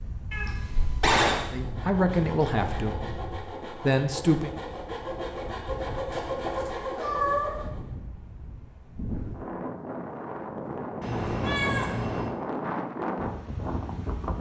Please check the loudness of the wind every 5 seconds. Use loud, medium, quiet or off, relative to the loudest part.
medium, medium, loud.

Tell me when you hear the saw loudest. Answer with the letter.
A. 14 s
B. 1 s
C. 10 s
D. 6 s
D.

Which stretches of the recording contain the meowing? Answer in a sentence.
You can hear the meowing from 0.3 to 1.4 s, from 6.1 to 7.7 s and from 11.0 to 12.3 s.